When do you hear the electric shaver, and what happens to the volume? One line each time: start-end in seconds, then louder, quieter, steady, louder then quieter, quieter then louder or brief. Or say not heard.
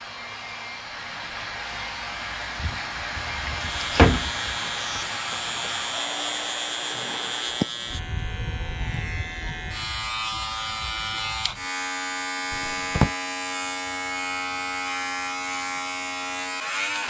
3.5-17.0 steady.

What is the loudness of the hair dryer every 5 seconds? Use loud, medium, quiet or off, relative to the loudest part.
loud, loud, off, off.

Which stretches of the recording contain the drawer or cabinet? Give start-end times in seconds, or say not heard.
2.6-4.5, 12.5-13.1.